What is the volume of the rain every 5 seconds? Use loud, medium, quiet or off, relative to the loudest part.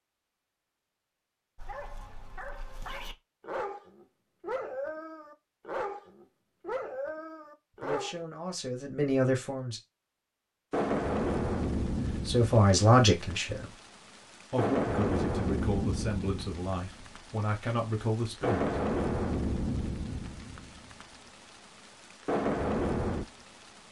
off, off, loud, loud, loud.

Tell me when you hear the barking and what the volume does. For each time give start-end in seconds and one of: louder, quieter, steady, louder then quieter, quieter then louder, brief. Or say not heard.
1.6-8.2 louder.